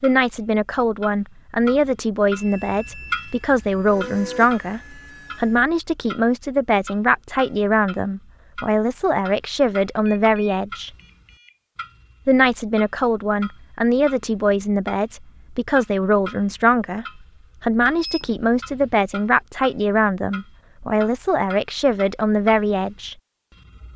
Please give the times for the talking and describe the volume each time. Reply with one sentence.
You can hear the talking from 0.0 to 10.9 s, at a steady volume; and from 12.2 to 23.1 s, at a steady volume.